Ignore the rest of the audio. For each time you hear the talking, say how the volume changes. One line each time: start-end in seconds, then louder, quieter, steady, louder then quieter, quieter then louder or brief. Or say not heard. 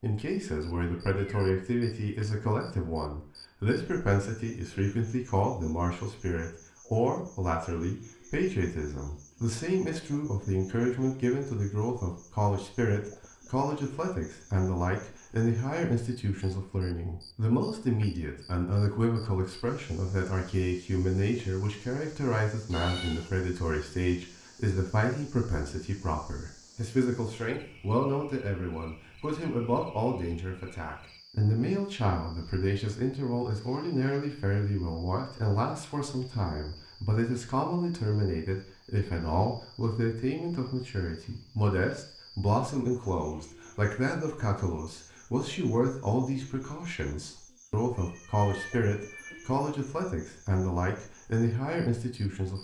0.0-52.6 steady.